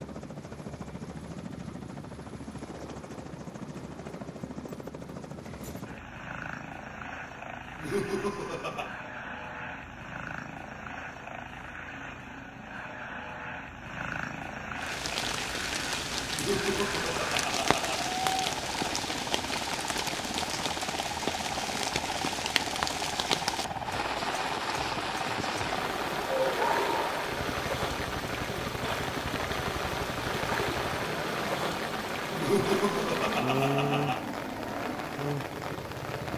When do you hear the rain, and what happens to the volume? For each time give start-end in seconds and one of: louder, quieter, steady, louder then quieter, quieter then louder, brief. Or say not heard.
14.8-36.3 steady.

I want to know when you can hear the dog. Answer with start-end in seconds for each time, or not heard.
26.2-27.4.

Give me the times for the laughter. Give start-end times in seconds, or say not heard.
7.8-8.9, 16.3-18.0, 32.4-34.2.